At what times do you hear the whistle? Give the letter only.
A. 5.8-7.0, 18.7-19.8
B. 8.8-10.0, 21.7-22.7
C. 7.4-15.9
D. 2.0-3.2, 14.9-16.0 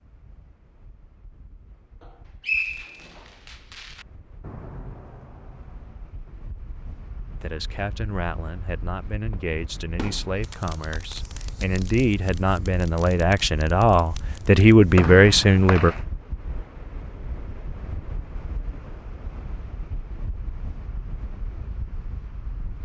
D.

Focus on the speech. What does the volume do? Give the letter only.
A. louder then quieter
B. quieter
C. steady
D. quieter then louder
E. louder
E.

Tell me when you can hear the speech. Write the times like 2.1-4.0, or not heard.
7.4-15.9.